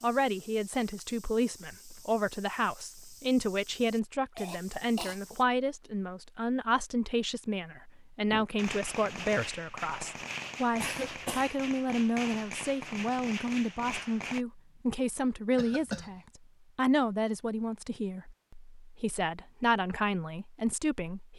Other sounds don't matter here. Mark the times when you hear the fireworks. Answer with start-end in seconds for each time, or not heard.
8.3-14.4.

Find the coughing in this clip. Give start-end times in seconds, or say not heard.
4.3-5.2, 10.8-11.6, 15.6-16.1.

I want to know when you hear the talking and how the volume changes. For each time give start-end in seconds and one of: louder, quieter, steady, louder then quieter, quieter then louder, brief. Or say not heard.
0.0-21.3 steady.